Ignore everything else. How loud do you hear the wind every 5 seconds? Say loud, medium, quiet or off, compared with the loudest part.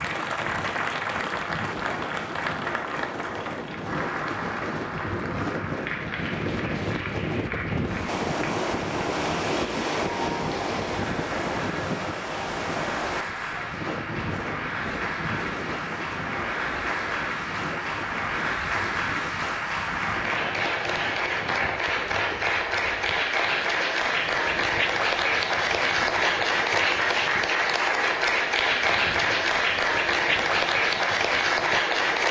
medium, loud, loud, medium, quiet, quiet, quiet.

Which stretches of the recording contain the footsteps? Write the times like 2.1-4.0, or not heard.
not heard.